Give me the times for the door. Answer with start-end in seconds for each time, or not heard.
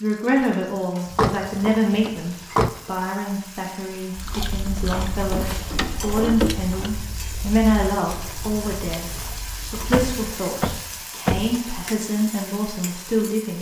1.1-2.7, 4.7-6.9, 9.9-11.6.